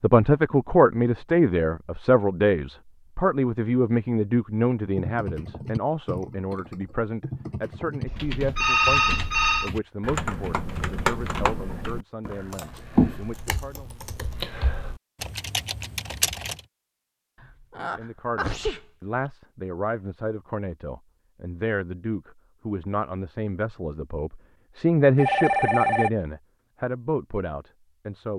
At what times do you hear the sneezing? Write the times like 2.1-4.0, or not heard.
17.4-19.3.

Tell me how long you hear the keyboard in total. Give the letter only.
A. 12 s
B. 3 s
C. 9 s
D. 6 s
A.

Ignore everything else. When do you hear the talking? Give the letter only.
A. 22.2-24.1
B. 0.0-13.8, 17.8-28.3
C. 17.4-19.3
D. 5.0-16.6
B.